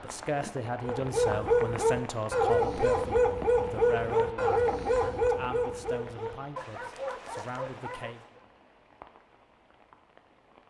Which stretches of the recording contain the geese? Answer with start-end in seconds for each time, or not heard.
not heard.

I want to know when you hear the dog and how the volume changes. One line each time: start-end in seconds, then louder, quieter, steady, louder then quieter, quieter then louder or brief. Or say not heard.
0.8-8.4 quieter.